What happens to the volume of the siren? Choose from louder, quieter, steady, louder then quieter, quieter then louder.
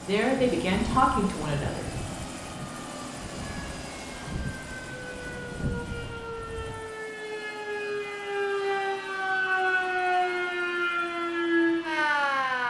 louder.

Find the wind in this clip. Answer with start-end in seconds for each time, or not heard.
0.0-6.8.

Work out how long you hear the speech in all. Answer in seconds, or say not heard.
2 s.